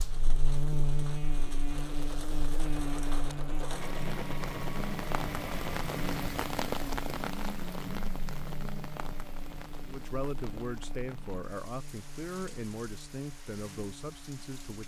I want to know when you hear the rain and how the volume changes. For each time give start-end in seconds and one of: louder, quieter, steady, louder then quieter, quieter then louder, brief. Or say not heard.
0.0-14.8 louder then quieter.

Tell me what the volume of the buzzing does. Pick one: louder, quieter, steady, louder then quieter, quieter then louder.
quieter.